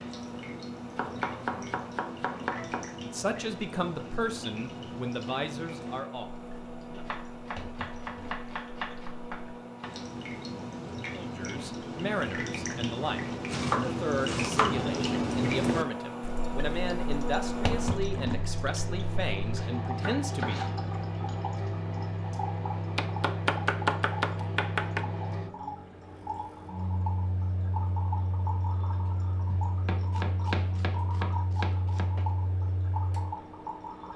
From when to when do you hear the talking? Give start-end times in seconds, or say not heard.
3.0-7.0, 11.1-20.8.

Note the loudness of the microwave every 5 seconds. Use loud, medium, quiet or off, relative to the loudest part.
medium, medium, medium, loud, loud, medium, medium.